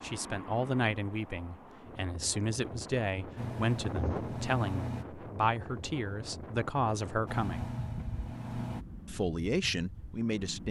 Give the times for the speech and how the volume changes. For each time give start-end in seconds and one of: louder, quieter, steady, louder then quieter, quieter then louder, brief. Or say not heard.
0.0-7.7 steady
9.1-10.6 brief.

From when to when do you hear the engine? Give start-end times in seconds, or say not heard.
3.4-5.0, 7.2-8.8.